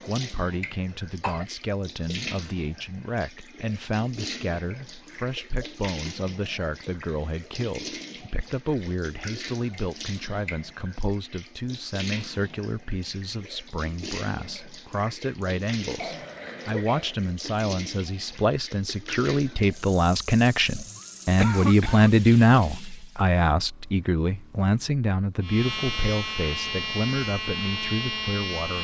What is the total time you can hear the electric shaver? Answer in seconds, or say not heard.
3 s.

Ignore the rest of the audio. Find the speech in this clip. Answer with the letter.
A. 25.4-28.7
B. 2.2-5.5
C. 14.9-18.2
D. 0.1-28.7
D.